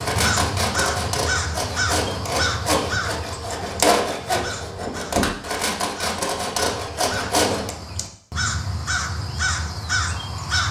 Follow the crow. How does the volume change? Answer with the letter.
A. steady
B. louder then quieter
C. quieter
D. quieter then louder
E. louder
D.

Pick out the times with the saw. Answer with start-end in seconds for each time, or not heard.
0.0-7.7.